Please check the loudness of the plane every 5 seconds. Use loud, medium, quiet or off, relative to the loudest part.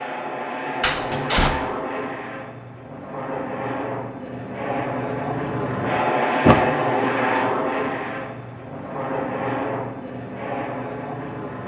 medium, loud, medium.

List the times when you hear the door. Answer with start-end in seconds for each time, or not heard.
0.8-1.6, 6.5-7.2.